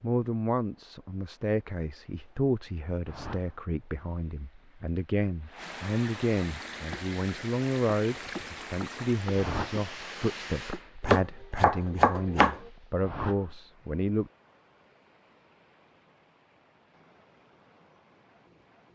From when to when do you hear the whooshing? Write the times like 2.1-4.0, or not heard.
3.0-3.5, 9.3-9.8, 13.0-13.6.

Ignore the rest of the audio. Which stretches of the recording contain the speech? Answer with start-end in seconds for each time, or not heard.
0.0-14.3.